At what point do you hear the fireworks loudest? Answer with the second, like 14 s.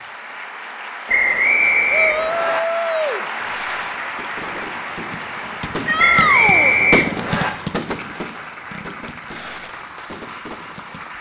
7 s.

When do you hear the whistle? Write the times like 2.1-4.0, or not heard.
1.1-2.6, 6.0-7.5.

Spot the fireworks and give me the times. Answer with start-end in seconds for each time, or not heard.
3.4-11.1.